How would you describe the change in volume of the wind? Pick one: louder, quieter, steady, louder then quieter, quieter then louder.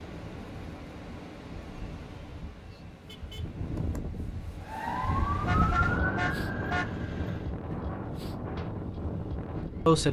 louder.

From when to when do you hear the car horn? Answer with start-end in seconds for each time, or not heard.
3.0-3.5, 5.3-6.9.